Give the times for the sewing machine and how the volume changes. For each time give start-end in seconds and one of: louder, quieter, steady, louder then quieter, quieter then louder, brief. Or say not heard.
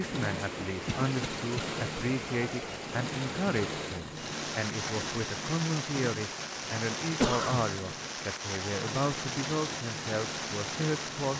0.0-11.3 steady.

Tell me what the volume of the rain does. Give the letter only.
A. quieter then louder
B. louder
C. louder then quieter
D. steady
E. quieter
D.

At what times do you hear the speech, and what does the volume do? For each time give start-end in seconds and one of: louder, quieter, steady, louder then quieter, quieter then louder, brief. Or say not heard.
0.0-11.3 steady.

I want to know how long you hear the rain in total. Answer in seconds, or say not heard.
11 s.